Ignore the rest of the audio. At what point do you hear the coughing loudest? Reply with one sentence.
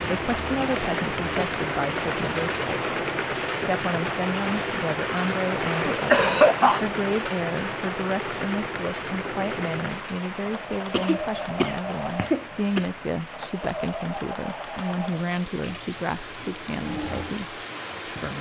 The loudest moment of the coughing is at 6 seconds.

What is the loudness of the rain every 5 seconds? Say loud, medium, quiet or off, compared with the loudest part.
loud, loud, medium, medium.